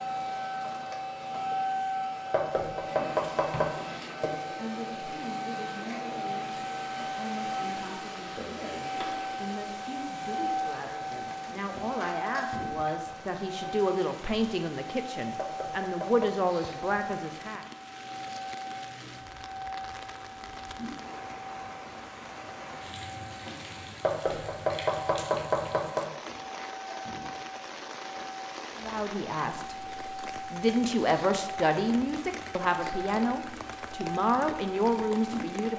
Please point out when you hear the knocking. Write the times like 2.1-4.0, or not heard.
2.3-3.7, 15.3-16.4, 24.0-26.1.